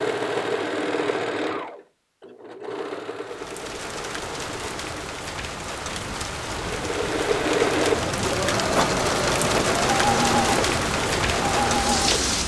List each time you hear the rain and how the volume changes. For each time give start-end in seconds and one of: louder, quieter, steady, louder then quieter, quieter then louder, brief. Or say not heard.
3.2-12.4 louder.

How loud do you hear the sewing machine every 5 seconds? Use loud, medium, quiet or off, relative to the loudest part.
medium, loud, loud.